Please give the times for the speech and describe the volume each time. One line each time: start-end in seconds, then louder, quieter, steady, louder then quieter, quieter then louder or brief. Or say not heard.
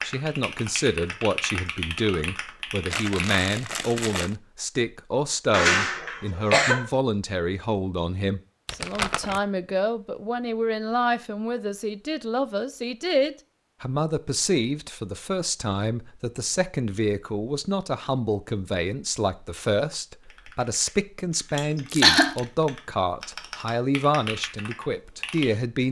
0.0-25.8 steady.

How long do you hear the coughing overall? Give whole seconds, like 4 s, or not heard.
2 s.